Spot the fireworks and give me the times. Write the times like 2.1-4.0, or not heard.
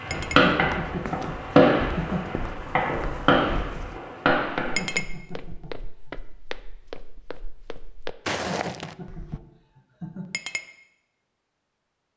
0.0-4.9.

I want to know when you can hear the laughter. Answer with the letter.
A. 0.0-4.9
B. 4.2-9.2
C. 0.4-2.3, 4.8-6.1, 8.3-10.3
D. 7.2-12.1
C.